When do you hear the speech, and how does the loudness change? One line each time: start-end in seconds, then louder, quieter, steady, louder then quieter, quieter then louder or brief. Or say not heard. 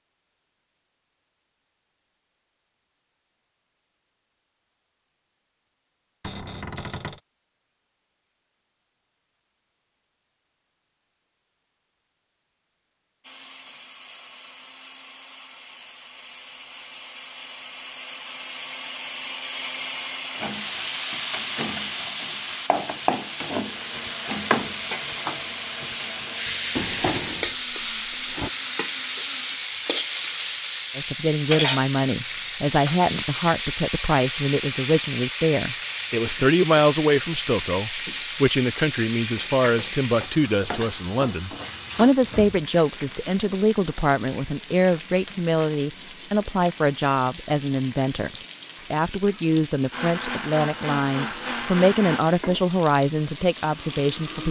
30.9-54.4 steady.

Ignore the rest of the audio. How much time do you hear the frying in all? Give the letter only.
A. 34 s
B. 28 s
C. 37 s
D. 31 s
A.